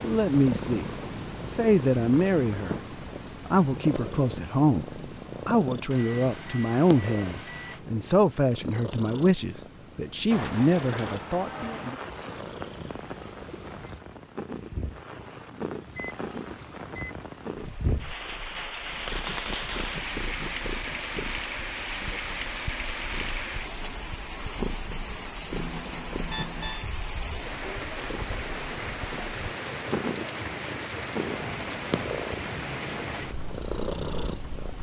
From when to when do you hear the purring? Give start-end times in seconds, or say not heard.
0.0-34.7.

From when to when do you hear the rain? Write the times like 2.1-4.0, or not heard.
10.3-34.7.